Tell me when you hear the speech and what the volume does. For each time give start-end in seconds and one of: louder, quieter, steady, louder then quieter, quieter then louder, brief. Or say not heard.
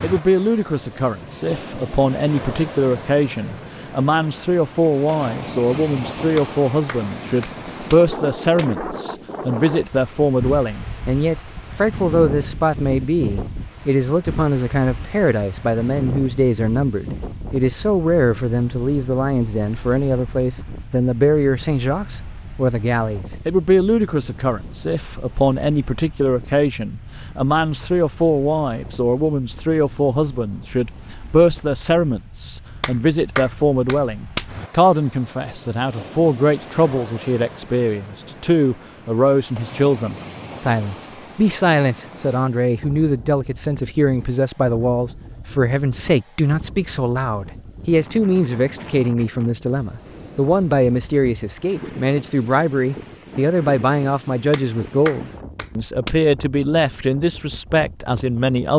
0.0-58.7 steady.